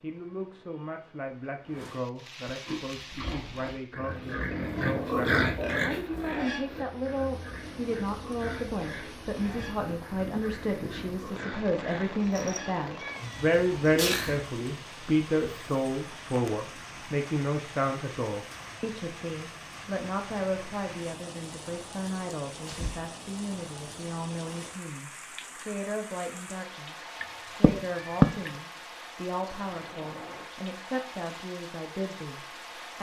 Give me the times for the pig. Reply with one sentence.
You can hear the pig from 2.6 to 14.4 s.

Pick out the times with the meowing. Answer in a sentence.
The meowing can be heard from 12.2 to 14.4 s and from 27.2 to 28.5 s.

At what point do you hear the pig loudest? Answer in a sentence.
The loudest moment of the pig is at 5 seconds.